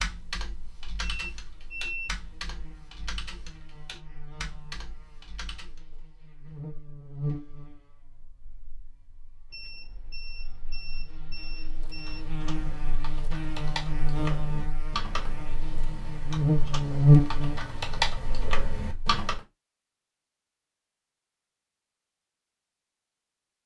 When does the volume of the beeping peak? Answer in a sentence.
The volume of the beeping peaks at 2 seconds.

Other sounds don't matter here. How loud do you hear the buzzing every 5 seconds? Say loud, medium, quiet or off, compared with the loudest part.
quiet, quiet, quiet, loud, off.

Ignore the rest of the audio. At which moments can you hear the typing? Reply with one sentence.
The typing can be heard from 0.0 to 5.8 s and from 11.9 to 19.4 s.